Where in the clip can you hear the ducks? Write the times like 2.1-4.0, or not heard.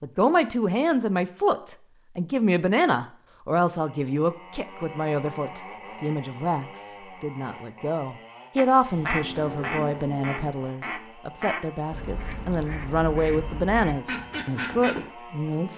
8.6-15.1.